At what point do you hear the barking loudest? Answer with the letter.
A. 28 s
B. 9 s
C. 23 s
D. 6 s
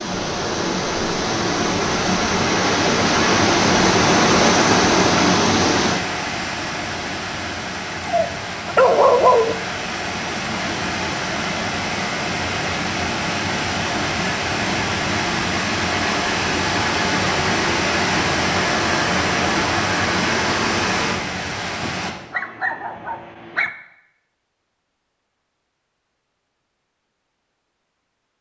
B.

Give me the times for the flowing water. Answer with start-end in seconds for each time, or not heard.
0.0-22.1.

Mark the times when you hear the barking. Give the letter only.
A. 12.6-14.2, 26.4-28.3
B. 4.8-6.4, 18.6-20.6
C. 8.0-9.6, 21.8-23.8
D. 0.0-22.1
C.